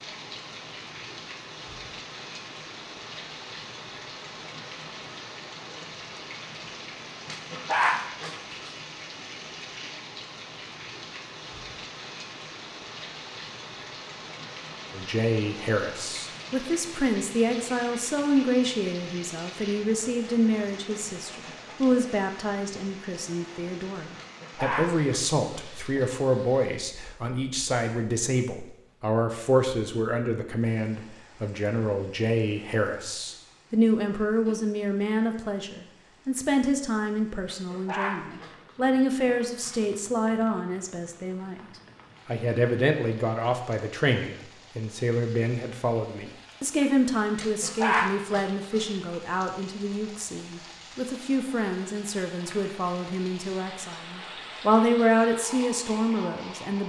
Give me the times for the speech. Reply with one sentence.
You can hear the speech from 14.9 to 41.6 s and from 42.2 to 56.8 s.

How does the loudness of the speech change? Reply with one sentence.
The loudness of the speech stays about the same.